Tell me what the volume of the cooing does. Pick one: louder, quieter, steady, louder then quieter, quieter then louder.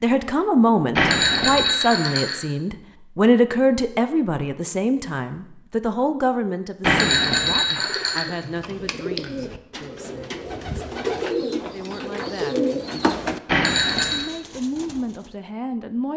louder then quieter.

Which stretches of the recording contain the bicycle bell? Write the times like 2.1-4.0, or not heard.
0.9-2.5, 6.8-8.2, 13.4-14.2.